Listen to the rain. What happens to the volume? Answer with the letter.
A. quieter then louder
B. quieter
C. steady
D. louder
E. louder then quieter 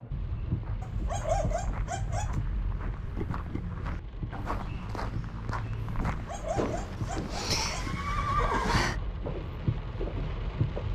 A.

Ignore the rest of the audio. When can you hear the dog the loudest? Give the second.
1 s.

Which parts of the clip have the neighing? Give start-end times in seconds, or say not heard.
6.5-9.0.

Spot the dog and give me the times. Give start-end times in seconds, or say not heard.
0.8-2.4, 6.0-8.0.